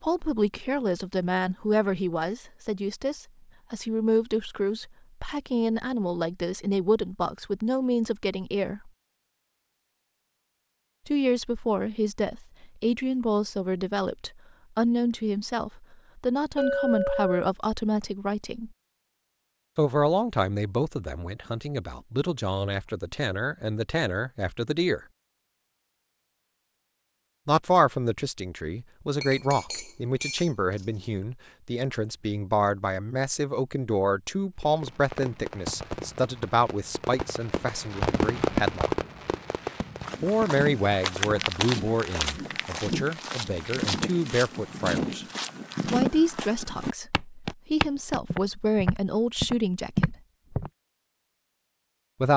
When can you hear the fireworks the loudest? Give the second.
39 s.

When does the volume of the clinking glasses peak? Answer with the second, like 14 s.
17 s.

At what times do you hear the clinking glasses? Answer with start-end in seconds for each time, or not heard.
16.6-17.5, 29.2-30.9.